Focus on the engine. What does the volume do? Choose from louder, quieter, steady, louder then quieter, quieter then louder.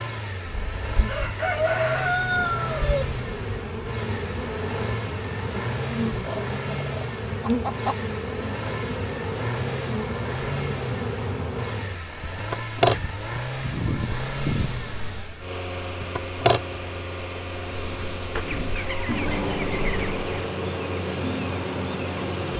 steady.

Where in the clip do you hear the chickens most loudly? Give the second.
2 s.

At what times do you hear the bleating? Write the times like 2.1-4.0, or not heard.
not heard.